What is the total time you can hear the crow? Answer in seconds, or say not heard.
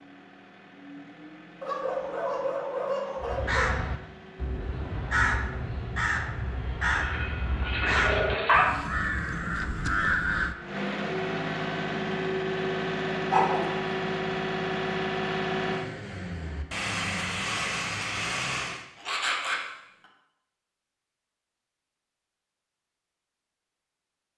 7 s.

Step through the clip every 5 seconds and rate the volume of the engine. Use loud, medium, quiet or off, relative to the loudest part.
quiet, quiet, loud, loud, off.